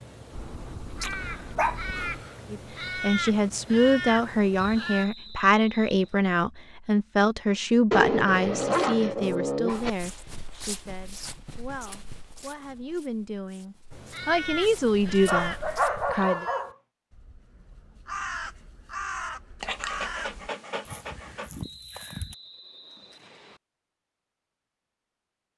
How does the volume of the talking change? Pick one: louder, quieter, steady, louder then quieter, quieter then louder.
quieter then louder.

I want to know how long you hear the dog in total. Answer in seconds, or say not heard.
7 s.